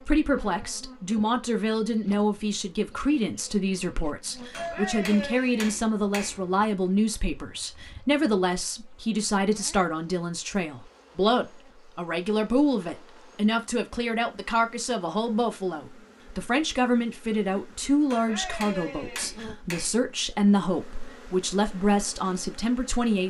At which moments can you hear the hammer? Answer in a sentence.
The hammer can be heard from 4.5 to 6.4 s and from 18.1 to 19.9 s.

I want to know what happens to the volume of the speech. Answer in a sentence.
The volume of the speech stays about the same.